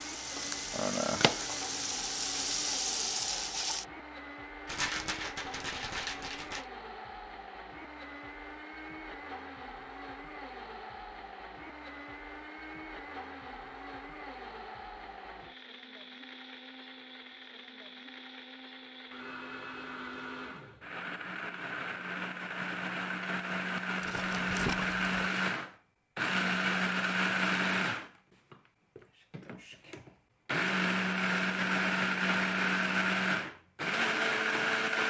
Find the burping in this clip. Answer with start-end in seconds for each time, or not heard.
not heard.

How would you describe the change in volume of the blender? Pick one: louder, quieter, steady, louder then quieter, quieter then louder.
louder.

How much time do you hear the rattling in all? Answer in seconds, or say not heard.
3 s.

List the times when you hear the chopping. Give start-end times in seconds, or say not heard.
not heard.